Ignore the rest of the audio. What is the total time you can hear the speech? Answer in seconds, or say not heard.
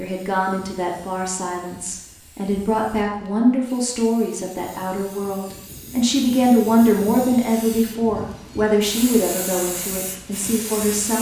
11 s.